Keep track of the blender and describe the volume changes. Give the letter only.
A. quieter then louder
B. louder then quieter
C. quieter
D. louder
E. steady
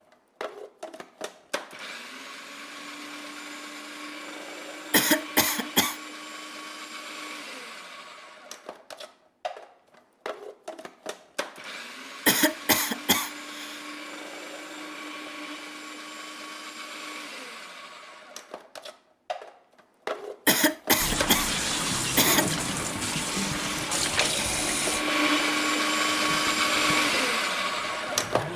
D.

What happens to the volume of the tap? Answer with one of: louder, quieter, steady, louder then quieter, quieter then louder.
quieter.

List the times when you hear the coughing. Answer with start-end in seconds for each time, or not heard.
4.9-6.0, 12.2-13.8, 20.4-22.4.